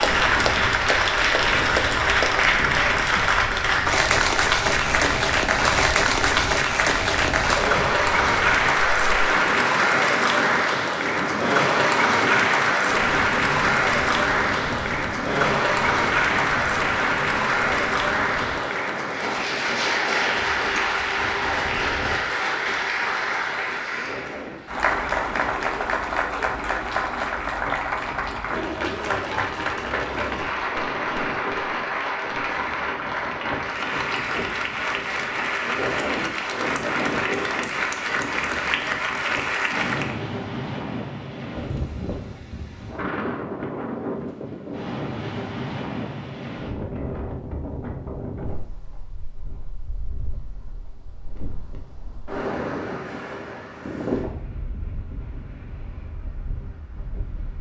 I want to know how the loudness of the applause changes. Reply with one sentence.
The loudness of the applause goes down.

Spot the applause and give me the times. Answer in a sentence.
You can hear the applause from 0.0 to 40.1 s.